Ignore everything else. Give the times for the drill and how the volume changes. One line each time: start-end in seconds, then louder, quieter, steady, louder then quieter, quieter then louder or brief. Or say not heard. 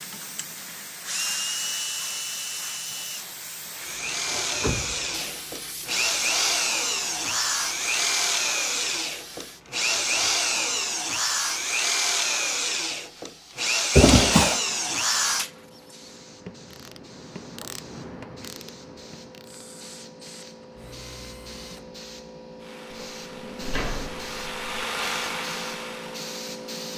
0.0-16.1 louder
19.4-26.8 louder.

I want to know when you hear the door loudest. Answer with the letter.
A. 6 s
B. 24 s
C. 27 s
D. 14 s
D.